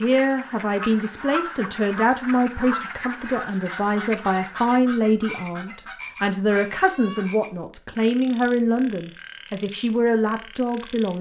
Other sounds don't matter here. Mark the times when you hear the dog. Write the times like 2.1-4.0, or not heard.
not heard.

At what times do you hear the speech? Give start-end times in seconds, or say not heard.
0.0-11.1.